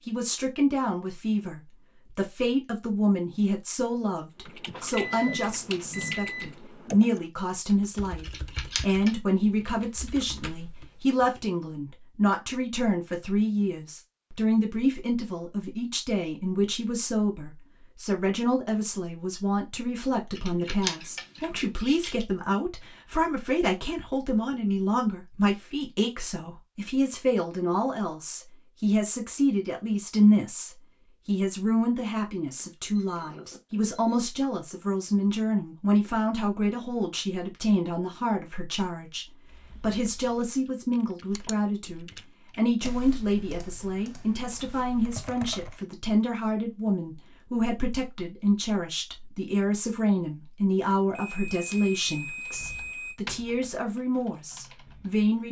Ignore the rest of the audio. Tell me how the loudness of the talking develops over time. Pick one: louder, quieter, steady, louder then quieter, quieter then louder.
steady.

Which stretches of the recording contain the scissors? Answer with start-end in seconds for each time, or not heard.
8.2-9.2, 20.4-22.2, 51.2-52.8.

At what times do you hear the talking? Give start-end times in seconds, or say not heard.
0.1-55.4.